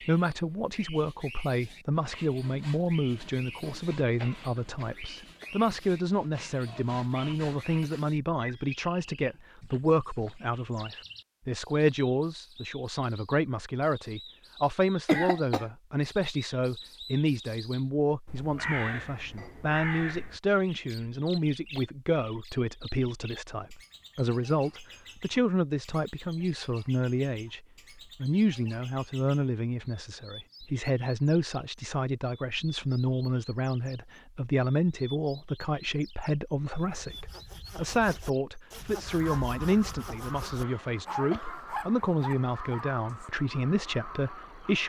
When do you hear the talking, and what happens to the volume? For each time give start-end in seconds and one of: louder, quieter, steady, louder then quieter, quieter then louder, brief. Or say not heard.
0.0-44.8 steady.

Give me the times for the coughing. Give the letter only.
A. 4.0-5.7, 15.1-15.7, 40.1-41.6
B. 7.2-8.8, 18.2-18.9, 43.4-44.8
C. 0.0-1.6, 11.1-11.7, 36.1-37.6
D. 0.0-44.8
A.